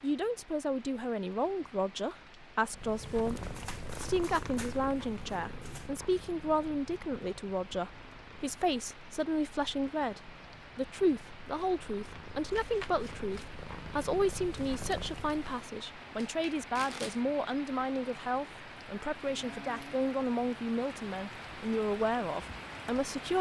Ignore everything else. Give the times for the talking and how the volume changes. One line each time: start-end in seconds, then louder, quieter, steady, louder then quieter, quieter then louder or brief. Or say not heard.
0.0-23.3 steady.